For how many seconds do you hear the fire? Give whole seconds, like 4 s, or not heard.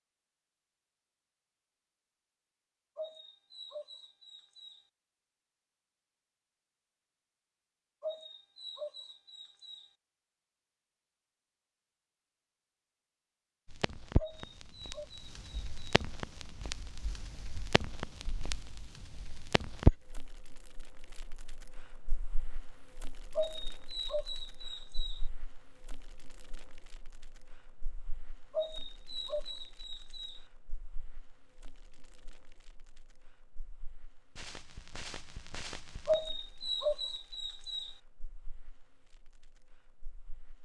27 s.